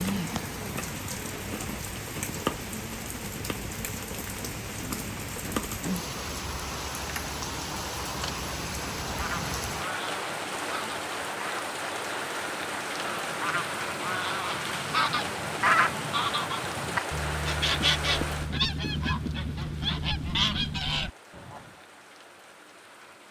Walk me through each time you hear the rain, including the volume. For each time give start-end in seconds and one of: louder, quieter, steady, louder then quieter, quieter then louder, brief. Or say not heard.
0.0-23.2 quieter.